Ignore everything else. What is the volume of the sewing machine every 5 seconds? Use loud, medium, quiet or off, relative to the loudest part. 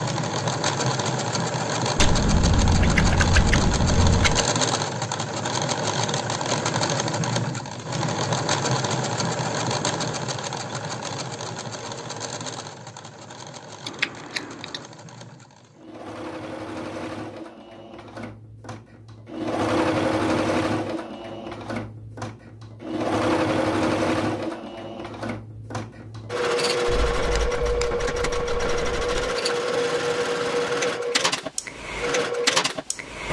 loud, loud, medium, medium, loud, loud, loud.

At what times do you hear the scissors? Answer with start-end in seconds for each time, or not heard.
1.9-4.5, 13.8-14.8, 26.9-29.3.